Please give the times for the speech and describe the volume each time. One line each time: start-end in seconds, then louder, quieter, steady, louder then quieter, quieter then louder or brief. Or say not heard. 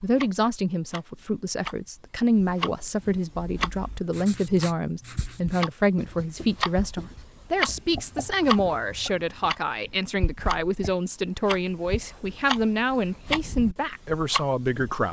0.0-15.0 steady.